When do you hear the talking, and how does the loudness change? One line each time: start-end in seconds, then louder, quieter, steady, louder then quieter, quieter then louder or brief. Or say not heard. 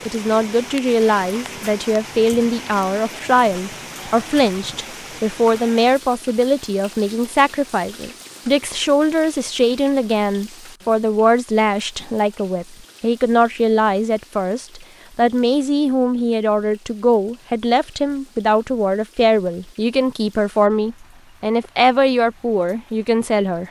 0.0-23.6 steady.